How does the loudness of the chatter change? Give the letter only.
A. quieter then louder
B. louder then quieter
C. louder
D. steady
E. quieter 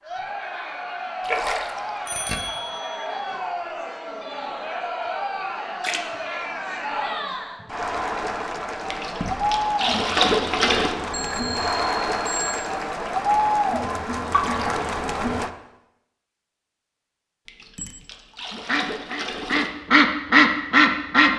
C.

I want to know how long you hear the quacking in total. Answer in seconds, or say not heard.
3 s.